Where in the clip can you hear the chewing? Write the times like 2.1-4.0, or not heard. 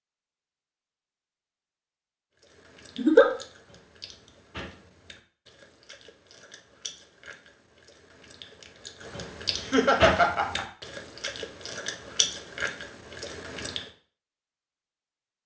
2.4-13.9.